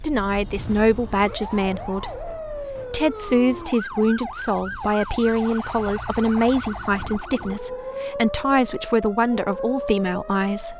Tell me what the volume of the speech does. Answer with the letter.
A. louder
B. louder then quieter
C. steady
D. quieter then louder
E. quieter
C.